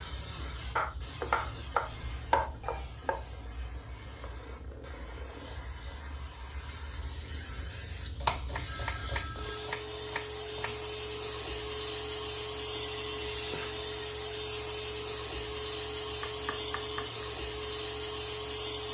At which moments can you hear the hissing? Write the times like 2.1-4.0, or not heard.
0.0-18.8.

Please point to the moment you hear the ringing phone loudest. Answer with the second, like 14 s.
13 s.